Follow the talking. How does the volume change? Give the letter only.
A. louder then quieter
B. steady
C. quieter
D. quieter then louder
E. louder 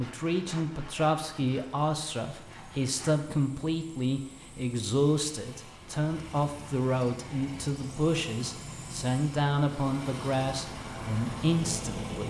B.